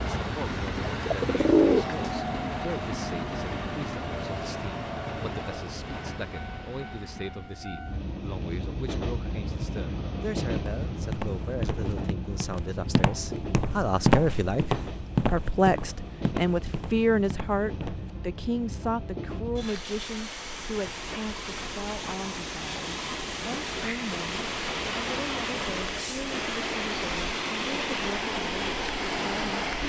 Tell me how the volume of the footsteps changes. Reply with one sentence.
The volume of the footsteps goes up, then down.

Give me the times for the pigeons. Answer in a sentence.
You can hear the pigeons from 0.9 to 2.2 s.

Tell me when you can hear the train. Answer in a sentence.
You can hear the train from 0.0 to 29.8 s.